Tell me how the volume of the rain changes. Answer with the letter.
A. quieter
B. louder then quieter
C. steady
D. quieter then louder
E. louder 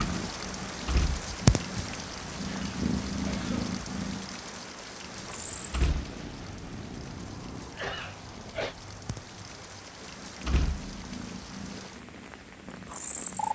A.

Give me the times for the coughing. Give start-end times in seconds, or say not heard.
2.5-3.8, 7.8-8.8.